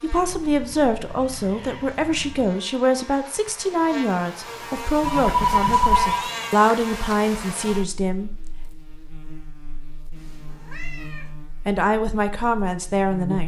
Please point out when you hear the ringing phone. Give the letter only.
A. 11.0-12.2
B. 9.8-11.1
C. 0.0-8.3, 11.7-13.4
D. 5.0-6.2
D.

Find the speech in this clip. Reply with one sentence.
You can hear the speech from 0.0 to 8.3 s and from 11.7 to 13.4 s.